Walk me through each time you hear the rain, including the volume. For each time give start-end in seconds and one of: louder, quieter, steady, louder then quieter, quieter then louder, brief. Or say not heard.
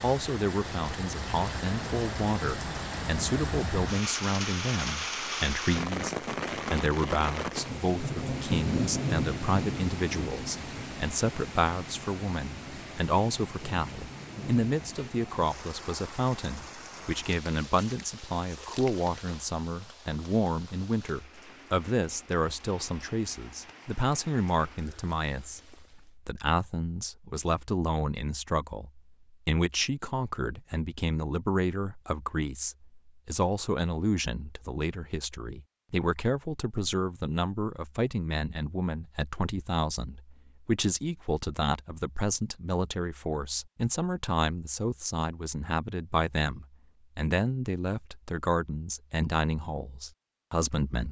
0.0-26.1 quieter.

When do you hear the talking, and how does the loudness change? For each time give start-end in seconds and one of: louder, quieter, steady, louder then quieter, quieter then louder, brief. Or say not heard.
0.0-51.0 steady.